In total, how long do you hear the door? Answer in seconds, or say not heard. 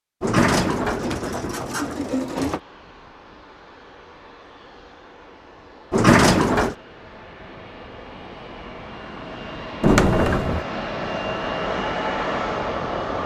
4 s.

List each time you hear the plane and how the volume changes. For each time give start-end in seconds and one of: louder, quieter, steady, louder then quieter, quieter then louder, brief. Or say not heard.
2.4-13.2 louder.